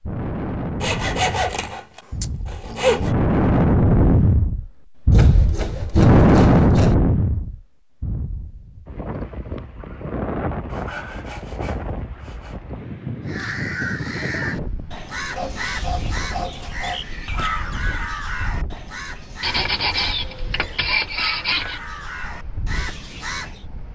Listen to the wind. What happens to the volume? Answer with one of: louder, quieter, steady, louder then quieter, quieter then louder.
quieter.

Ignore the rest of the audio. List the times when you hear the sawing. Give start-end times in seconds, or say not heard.
0.8-3.1, 5.1-7.0, 10.7-12.6, 15.3-17.1, 19.4-21.8.